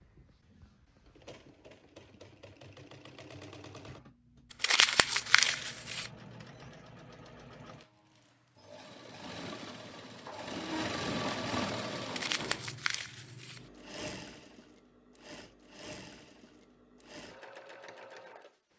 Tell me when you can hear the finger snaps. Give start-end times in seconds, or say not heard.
not heard.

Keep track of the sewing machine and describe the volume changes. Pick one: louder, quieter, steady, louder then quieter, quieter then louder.
louder then quieter.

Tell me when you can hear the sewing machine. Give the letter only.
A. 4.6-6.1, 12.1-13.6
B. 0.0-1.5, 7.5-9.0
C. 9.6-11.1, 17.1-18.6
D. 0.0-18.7
D.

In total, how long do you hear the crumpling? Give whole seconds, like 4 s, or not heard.
3 s.